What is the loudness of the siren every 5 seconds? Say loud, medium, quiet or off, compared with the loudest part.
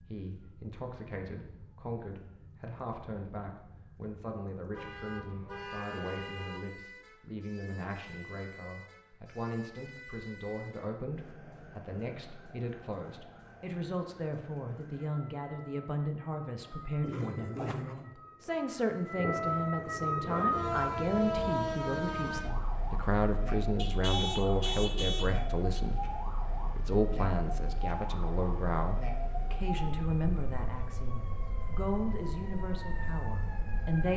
quiet, quiet, quiet, medium, loud, medium, medium.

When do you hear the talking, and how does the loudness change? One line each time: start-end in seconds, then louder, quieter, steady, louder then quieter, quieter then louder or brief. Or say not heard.
0.0-34.1 louder.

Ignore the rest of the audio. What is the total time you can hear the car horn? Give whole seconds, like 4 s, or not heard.
5 s.